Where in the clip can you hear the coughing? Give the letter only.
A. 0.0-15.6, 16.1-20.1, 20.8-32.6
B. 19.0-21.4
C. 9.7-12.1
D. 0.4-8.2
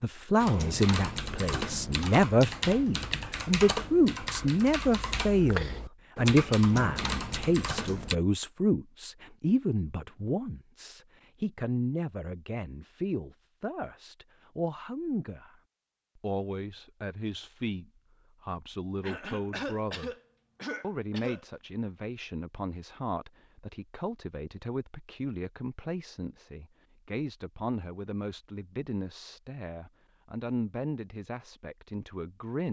B.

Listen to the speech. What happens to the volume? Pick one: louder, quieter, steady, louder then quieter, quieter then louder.
quieter.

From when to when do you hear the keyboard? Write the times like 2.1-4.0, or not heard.
0.4-8.2.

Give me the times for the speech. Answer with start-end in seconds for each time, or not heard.
0.0-15.6, 16.1-20.1, 20.8-32.6.